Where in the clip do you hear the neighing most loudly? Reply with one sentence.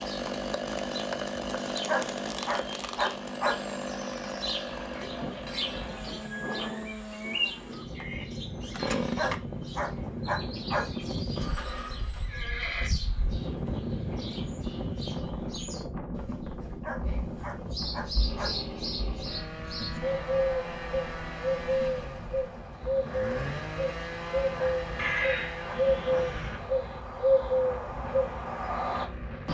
The loudest moment of the neighing is at 25 seconds.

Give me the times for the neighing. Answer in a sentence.
You can hear the neighing from 4.7 to 6.8 s, from 11.3 to 12.9 s and from 24.9 to 26.6 s.